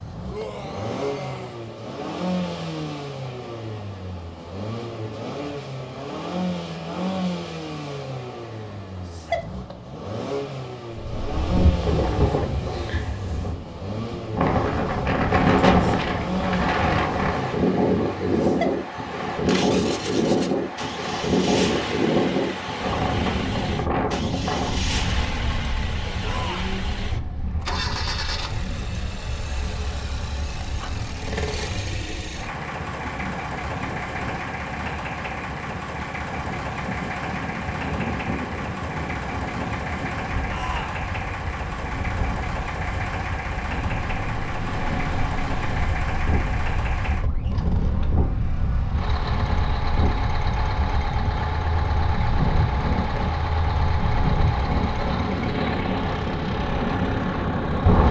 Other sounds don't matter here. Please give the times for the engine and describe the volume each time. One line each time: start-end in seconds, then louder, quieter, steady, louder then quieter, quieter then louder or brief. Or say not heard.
0.0-58.0 steady.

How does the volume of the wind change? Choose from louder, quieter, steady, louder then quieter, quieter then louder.
quieter then louder.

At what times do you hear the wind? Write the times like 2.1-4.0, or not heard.
10.9-58.0.